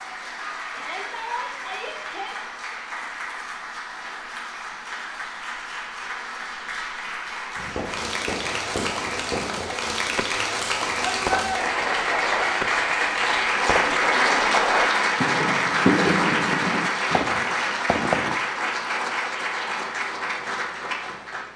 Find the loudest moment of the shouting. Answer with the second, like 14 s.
11 s.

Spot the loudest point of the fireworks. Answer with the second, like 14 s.
16 s.